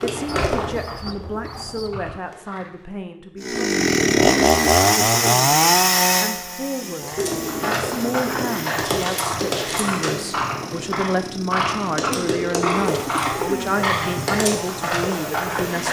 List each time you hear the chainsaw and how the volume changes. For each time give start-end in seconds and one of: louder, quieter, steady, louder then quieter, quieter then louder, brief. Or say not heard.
3.4-15.8 quieter.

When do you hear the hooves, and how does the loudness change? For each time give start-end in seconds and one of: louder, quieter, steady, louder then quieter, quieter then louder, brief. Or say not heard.
0.0-3.0 brief
7.0-15.8 steady.